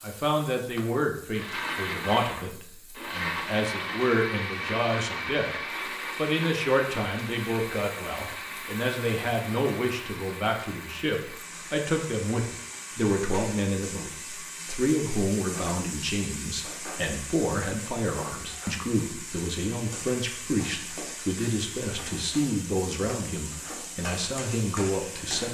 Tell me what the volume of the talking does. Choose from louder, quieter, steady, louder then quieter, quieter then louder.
steady.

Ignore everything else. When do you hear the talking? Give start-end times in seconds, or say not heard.
0.0-5.5, 6.2-25.4.